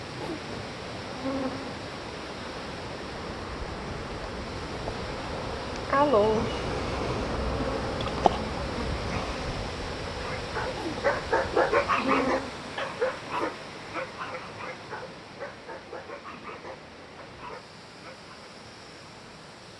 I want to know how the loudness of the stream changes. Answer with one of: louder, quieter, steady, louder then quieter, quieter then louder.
quieter.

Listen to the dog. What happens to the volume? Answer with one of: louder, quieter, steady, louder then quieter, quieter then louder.
quieter.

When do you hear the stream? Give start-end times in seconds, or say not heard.
0.0-19.7.